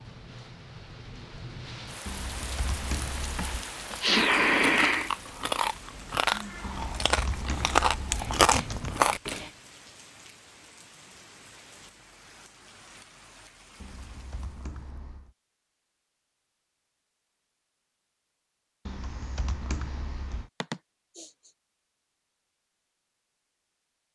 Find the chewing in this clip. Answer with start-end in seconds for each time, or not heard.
3.2-9.4.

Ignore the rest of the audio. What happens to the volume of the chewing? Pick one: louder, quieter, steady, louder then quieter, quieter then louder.
louder.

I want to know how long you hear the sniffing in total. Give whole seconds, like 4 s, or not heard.
3 s.